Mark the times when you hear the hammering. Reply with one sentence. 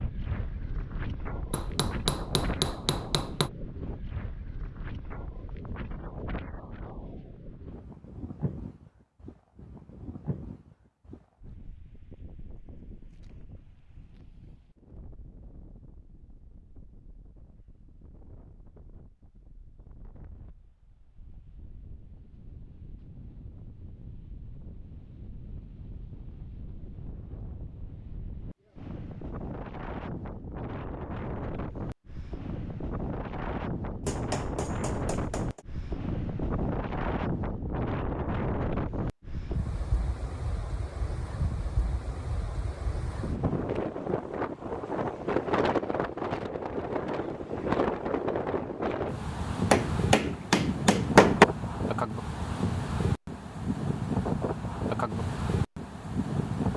The hammering can be heard from 1.5 to 3.5 s, from 34.0 to 35.6 s and from 49.7 to 51.5 s.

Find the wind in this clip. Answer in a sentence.
You can hear the wind from 0.0 to 56.7 s.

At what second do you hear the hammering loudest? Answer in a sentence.
The volume of the hammering peaks at 51 seconds.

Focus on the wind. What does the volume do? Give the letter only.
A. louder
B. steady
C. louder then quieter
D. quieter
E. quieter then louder
E.